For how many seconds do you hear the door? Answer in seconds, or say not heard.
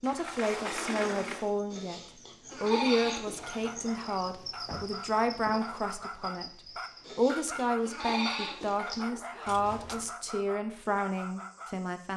3 s.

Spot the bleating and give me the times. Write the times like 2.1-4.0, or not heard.
1.7-3.7, 7.0-9.1.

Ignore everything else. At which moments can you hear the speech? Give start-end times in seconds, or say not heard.
0.0-2.0, 2.6-12.1.